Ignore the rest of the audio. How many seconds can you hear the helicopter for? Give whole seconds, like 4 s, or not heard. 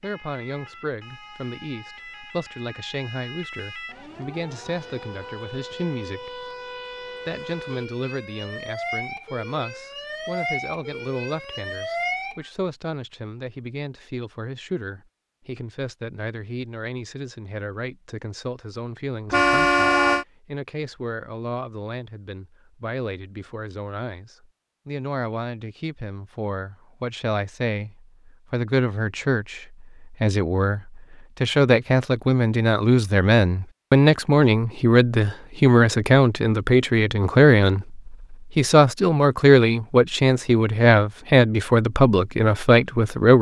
not heard.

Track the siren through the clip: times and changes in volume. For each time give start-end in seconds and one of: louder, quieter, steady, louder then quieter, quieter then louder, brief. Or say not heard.
0.0-12.5 louder.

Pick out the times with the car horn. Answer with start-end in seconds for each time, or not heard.
19.3-20.2.